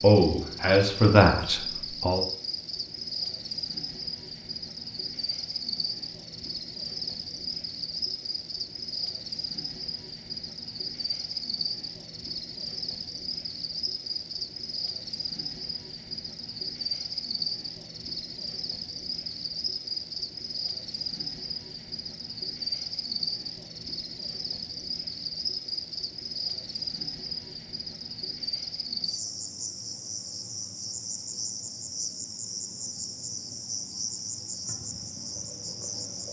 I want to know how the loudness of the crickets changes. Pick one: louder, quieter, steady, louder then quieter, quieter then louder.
steady.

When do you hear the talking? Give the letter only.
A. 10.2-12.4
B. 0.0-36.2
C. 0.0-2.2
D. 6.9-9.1
C.